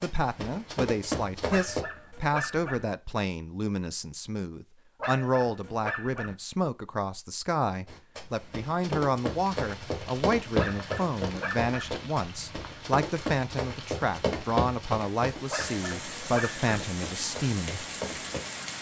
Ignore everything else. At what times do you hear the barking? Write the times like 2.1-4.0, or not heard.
1.4-2.9, 5.0-6.3, 10.6-11.9, 15.4-16.6.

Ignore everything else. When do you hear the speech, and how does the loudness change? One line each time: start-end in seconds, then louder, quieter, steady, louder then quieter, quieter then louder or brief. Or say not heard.
0.0-17.9 steady.